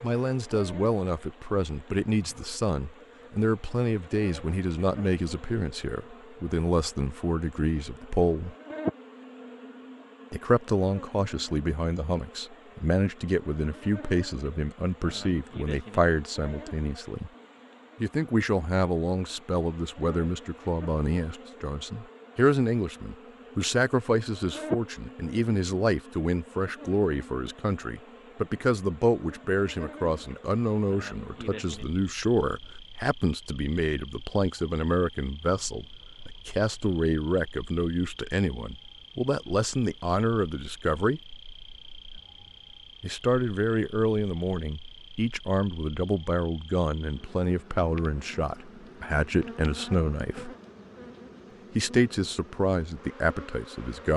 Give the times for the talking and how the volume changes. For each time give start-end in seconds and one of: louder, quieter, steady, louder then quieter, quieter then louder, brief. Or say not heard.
0.0-8.6 steady
10.3-17.3 steady
18.0-41.2 steady
43.0-50.5 steady
51.8-54.1 brief.